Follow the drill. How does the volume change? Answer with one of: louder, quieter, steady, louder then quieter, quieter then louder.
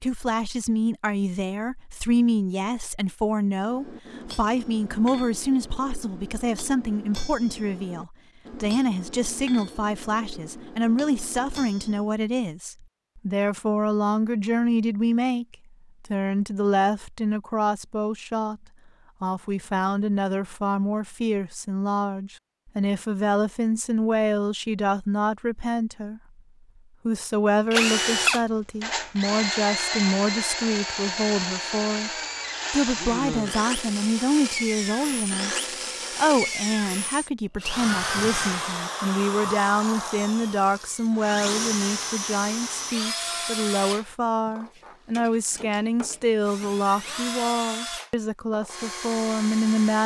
quieter.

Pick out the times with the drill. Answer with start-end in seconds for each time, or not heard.
27.7-50.0.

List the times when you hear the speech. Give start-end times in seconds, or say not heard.
0.0-18.6, 19.2-26.2, 27.1-32.1, 32.7-50.0.